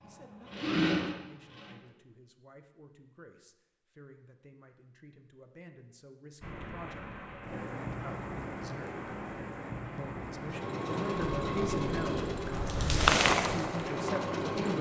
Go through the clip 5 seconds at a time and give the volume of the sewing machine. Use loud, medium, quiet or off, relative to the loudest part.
loud, off, loud.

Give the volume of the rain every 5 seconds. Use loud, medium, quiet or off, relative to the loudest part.
off, medium, loud.